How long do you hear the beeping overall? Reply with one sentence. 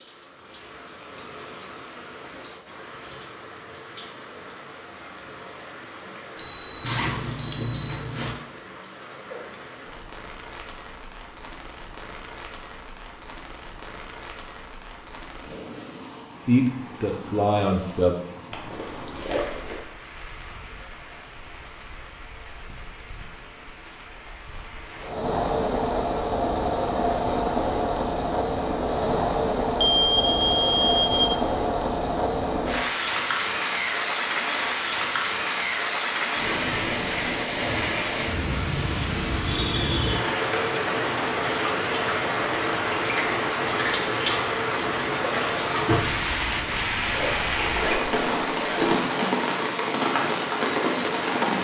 The beeping can be heard for 4 seconds in total.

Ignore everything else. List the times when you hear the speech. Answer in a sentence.
The speech can be heard from 16.4 to 18.2 s.